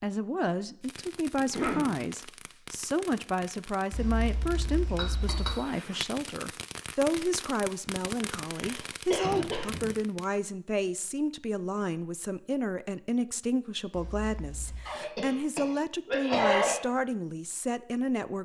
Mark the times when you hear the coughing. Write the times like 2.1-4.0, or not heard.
1.4-1.9, 8.1-9.9, 14.8-16.8.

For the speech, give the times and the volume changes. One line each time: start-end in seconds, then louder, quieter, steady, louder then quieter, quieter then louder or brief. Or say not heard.
0.0-18.3 steady.